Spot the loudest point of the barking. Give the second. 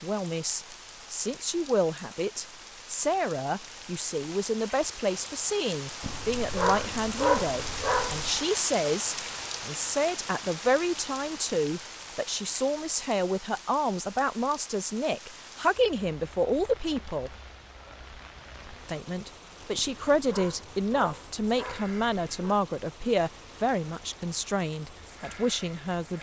7 s.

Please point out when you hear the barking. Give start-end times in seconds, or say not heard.
6.0-8.4, 19.8-22.6.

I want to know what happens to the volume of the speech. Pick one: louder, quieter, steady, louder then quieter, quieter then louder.
steady.